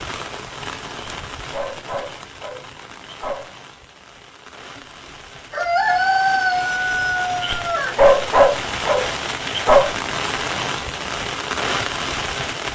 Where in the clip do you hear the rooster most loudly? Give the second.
6 s.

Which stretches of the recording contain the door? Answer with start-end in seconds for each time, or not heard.
not heard.